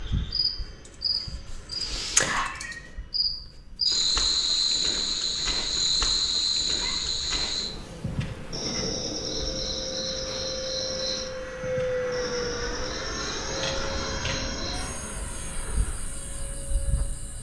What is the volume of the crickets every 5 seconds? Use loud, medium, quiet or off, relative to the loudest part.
loud, loud, medium, quiet.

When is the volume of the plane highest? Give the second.
12 s.